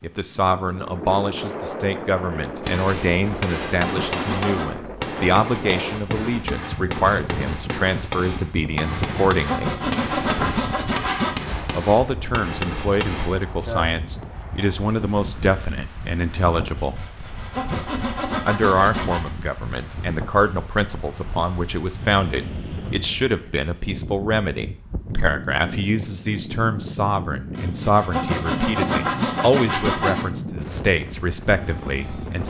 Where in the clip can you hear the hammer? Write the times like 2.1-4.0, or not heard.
2.6-13.9.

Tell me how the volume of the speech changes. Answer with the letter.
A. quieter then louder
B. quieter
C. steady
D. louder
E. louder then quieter
C.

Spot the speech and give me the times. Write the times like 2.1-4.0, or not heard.
0.0-9.8, 11.8-17.1, 18.4-32.4.